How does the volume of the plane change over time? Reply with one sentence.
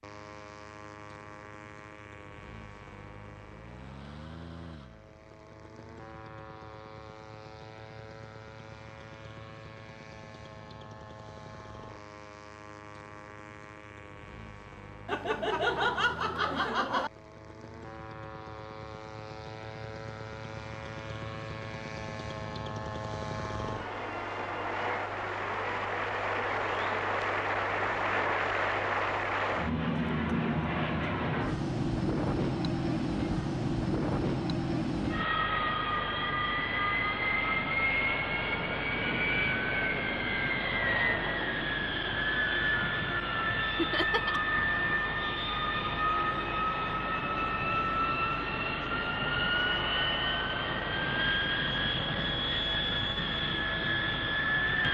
The volume of the plane goes up.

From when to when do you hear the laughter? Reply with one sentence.
The laughter can be heard from 15.1 to 17.1 s and from 43.8 to 44.4 s.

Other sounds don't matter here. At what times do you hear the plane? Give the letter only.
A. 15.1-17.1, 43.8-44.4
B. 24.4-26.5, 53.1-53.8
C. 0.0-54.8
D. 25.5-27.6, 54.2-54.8
C.